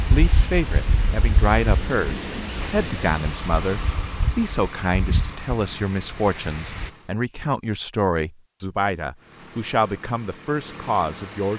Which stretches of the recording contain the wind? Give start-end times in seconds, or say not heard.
0.0-6.9.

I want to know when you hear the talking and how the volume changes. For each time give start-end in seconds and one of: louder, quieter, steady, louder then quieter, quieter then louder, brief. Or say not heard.
0.1-11.5 steady.